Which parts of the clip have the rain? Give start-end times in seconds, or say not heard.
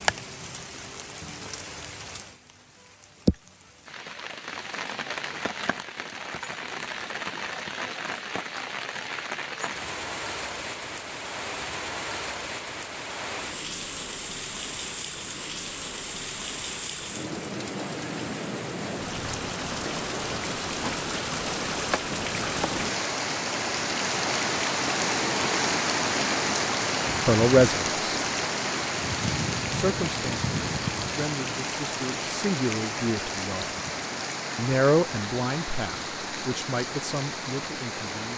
0.0-38.3.